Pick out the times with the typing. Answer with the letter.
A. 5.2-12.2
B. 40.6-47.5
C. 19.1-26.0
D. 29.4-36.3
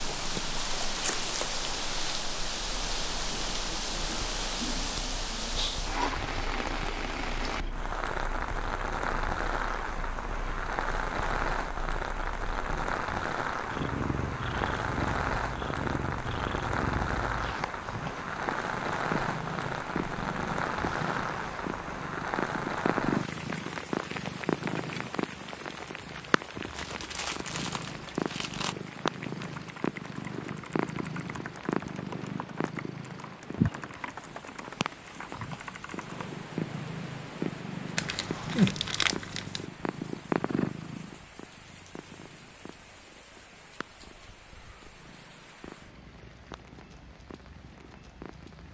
D.